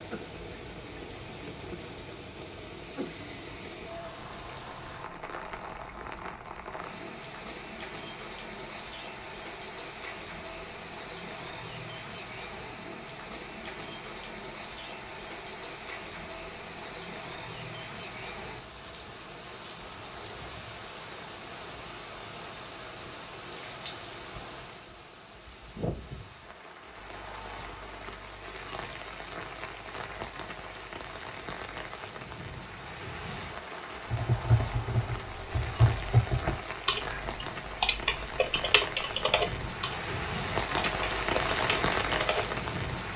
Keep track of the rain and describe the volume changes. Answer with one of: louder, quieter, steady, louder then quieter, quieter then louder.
louder.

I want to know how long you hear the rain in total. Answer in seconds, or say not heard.
43 s.